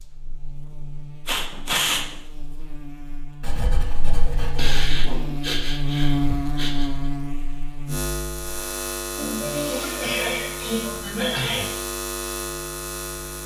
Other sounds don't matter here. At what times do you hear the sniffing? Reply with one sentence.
The sniffing can be heard from 1.2 to 2.1 s, from 4.5 to 6.9 s and from 9.2 to 11.7 s.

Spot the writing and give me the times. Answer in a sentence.
The writing can be heard from 3.4 to 5.0 s.